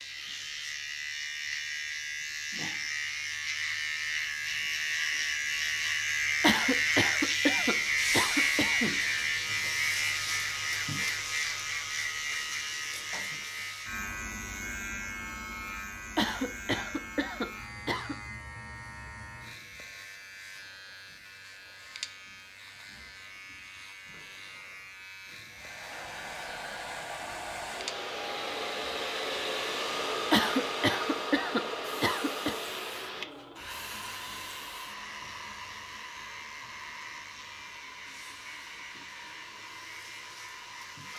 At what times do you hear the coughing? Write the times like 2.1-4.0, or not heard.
6.4-8.9, 16.1-18.1, 30.3-32.5.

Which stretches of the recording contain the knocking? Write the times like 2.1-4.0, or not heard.
not heard.